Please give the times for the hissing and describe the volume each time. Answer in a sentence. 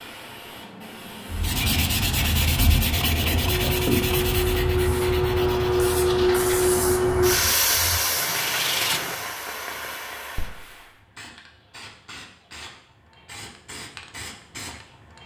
You can hear the hissing from 0.0 to 15.2 s, getting louder then quieter.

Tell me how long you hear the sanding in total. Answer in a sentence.
You can hear the sanding for 8 seconds altogether.